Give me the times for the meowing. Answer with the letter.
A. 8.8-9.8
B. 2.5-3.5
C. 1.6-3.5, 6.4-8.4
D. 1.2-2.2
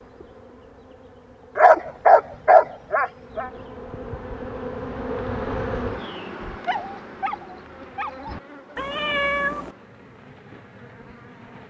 A.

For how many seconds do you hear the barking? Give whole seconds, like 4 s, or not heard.
4 s.